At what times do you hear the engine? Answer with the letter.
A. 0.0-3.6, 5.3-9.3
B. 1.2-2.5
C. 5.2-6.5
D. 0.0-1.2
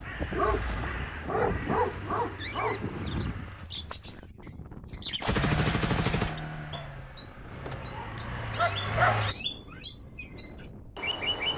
A.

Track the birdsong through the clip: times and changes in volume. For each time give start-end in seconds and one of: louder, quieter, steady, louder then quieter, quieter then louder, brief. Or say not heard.
0.0-11.5 louder.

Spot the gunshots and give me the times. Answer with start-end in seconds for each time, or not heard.
5.2-6.5.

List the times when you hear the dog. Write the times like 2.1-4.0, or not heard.
0.3-2.9, 7.7-9.2.